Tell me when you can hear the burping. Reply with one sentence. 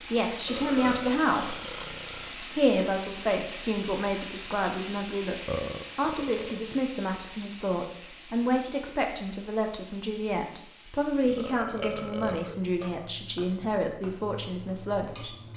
The burping can be heard from 0.5 to 2.4 s, from 5.5 to 6.6 s and from 11.2 to 12.7 s.